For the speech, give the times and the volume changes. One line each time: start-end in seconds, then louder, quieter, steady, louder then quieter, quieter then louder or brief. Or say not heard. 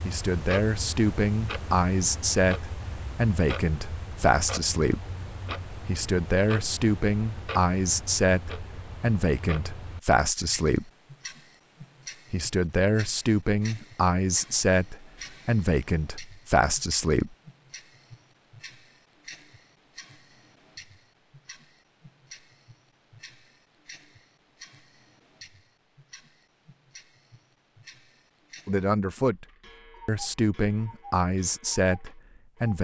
0.1-5.0 steady
5.8-10.9 steady
12.3-17.3 steady
28.6-29.4 brief
30.1-32.7 brief.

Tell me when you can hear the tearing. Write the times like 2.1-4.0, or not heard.
not heard.